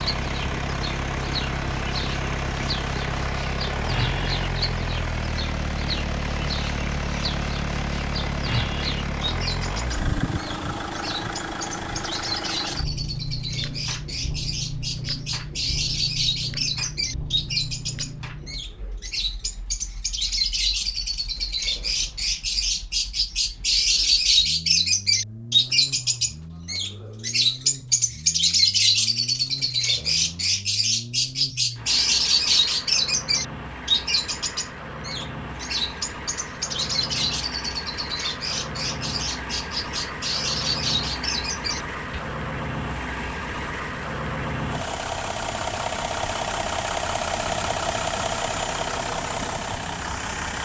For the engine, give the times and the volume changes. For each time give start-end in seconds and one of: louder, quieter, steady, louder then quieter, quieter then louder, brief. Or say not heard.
0.0-50.6 quieter then louder.